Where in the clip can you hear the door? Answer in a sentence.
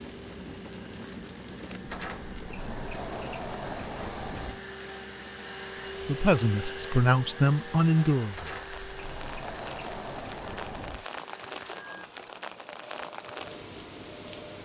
The door can be heard from 1.9 to 4.6 s and from 8.3 to 11.1 s.